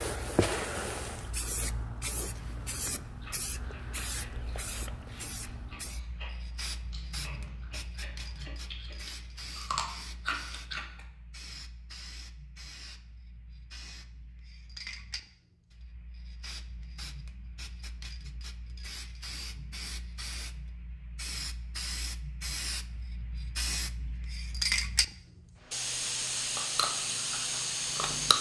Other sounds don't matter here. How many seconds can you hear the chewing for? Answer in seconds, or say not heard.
10 s.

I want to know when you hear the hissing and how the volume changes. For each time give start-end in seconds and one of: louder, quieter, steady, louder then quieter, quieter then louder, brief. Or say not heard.
0.0-28.3 quieter then louder.